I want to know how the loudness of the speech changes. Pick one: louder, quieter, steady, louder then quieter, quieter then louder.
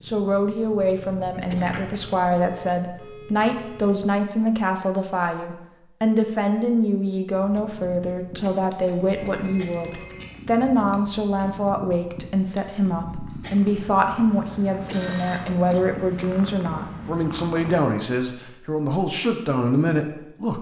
steady.